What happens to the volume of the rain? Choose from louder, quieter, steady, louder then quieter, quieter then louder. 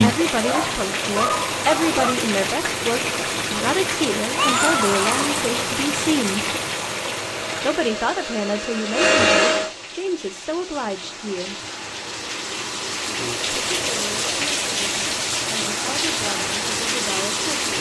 quieter then louder.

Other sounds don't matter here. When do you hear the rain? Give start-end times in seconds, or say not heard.
0.0-17.7.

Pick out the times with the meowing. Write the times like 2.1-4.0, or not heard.
4.3-5.5.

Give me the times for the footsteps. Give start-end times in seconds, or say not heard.
not heard.